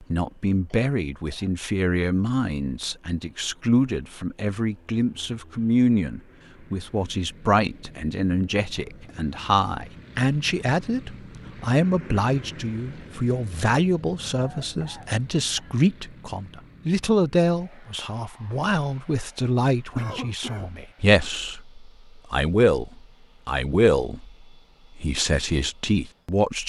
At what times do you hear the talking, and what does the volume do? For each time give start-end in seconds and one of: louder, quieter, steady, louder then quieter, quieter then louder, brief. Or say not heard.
0.1-26.6 steady.